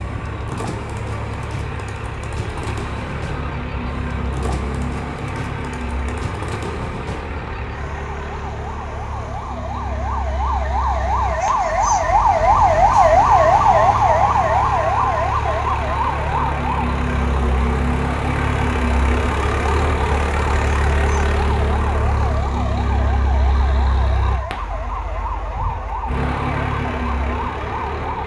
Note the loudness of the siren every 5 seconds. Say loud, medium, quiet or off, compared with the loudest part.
quiet, quiet, loud, medium, quiet, quiet.